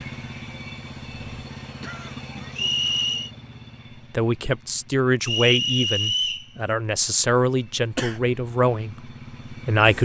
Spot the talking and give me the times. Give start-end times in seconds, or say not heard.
4.1-9.9.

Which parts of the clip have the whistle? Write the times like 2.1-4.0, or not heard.
2.5-3.3, 5.2-6.5.